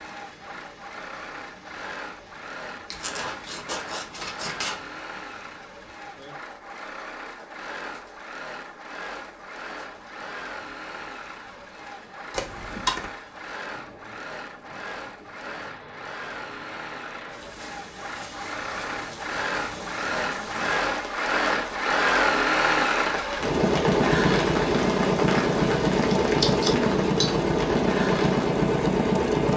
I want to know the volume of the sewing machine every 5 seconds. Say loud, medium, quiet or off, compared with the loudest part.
quiet, quiet, quiet, quiet, loud, loud.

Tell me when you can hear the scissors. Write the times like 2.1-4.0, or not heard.
2.9-4.8, 12.3-13.1, 26.2-27.5.